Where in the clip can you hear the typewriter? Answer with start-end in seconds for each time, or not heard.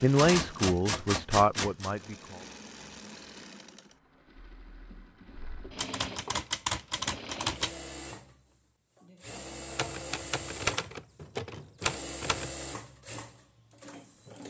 0.1-1.9, 5.8-7.8, 9.7-12.5.